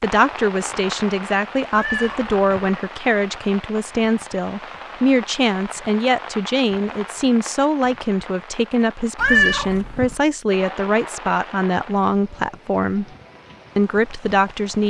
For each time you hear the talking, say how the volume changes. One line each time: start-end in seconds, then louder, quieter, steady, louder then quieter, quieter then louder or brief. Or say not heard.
0.0-13.1 steady
13.8-14.8 brief.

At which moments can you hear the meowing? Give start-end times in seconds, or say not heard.
1.7-2.7, 9.2-10.2.